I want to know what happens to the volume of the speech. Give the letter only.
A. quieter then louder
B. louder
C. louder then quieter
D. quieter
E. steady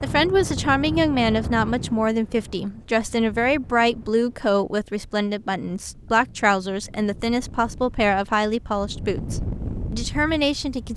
E.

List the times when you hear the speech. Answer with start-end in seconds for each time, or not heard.
0.0-10.9.